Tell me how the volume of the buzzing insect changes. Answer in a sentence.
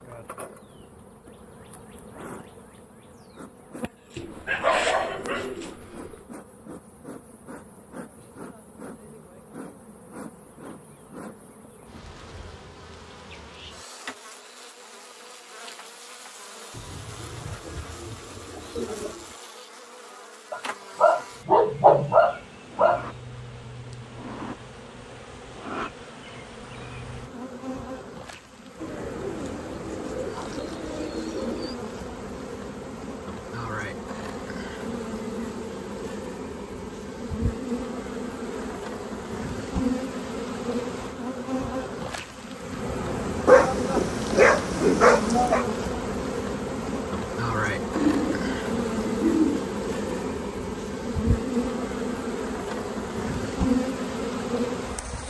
The loudness of the buzzing insect goes up.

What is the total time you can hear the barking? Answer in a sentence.
You can hear the barking for 7 seconds altogether.